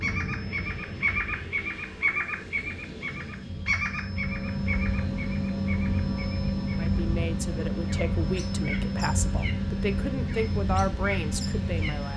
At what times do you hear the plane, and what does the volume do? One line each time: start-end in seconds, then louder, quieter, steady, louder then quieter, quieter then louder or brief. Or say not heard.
0.0-12.1 louder.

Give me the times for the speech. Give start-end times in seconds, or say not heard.
6.8-12.1.